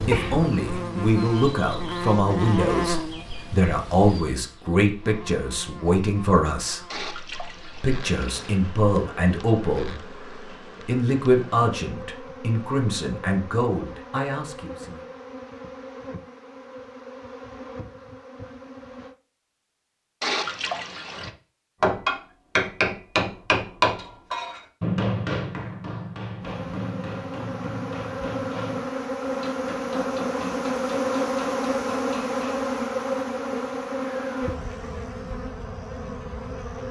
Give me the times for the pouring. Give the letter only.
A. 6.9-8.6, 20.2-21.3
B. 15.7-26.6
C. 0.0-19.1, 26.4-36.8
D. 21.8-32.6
A.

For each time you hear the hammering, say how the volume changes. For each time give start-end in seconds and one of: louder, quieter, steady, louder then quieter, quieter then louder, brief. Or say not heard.
21.8-32.6 quieter.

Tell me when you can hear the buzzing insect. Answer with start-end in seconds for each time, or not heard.
0.0-19.1, 26.4-36.8.